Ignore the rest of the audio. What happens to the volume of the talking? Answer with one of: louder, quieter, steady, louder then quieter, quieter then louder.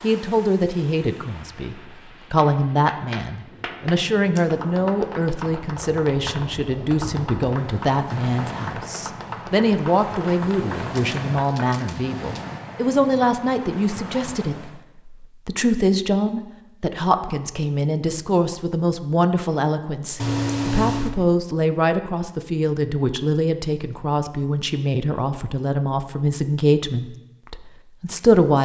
steady.